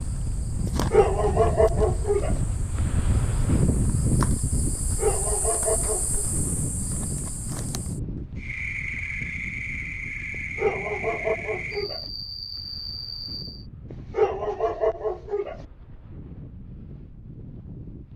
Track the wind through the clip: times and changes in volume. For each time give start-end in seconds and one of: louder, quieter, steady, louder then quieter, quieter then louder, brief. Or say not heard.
0.0-18.1 quieter.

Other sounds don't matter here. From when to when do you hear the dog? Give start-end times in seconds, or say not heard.
0.7-2.4, 4.8-6.2, 10.3-12.1, 13.9-15.7.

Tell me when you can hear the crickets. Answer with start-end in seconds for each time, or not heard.
0.0-13.7.